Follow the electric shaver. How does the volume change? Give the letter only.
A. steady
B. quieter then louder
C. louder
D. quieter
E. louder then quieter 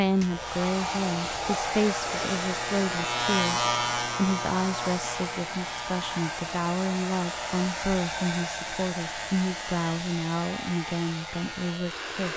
E.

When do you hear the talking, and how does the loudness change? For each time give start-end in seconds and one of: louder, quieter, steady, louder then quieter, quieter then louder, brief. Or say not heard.
0.0-12.3 steady.